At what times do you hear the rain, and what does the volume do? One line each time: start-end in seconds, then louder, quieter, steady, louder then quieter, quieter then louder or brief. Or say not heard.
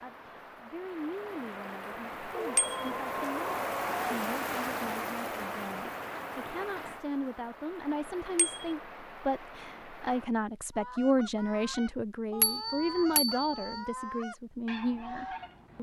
0.0-10.3 louder then quieter.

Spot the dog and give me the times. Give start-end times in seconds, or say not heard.
2.3-4.0.